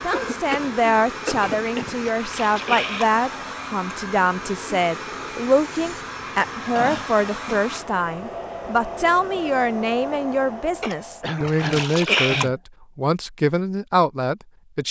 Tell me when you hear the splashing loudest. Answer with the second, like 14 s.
12 s.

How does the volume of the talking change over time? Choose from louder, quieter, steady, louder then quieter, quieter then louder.
steady.